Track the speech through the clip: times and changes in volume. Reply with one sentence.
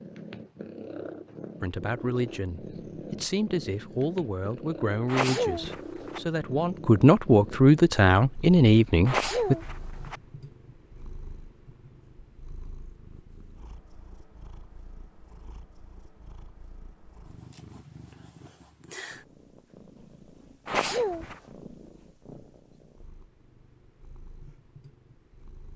You can hear the speech from 1.6 to 9.6 s, getting louder.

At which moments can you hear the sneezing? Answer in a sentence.
The sneezing can be heard from 5.0 to 6.2 s, from 9.1 to 10.2 s and from 20.6 to 21.4 s.